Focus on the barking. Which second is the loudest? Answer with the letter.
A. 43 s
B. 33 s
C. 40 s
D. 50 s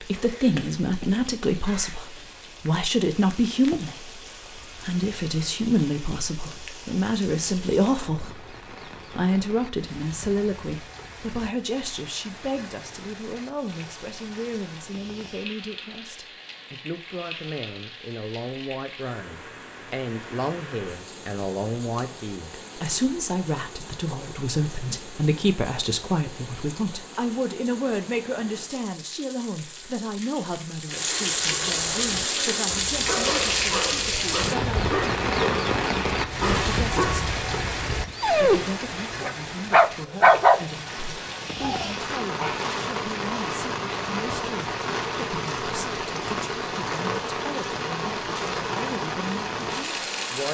C.